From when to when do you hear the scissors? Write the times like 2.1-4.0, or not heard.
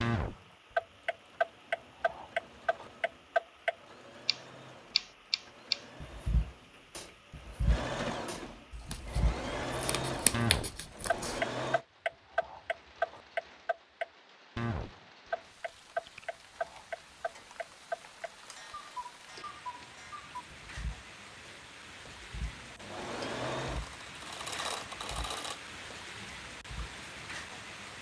8.7-11.4.